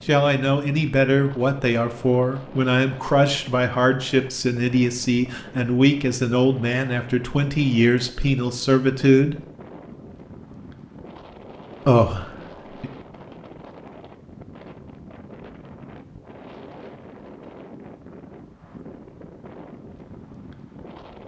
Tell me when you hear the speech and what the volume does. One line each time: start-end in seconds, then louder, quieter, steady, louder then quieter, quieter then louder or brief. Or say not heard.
0.1-9.3 steady
11.8-12.9 brief.